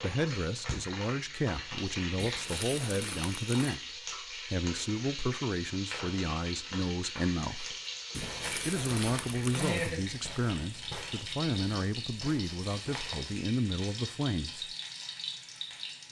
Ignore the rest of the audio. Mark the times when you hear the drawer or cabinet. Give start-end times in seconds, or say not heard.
not heard.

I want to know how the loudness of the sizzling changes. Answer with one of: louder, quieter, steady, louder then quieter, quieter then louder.
steady.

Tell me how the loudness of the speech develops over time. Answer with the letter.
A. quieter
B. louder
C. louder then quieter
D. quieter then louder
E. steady
E.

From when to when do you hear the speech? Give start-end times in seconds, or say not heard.
0.0-7.8, 8.7-14.7.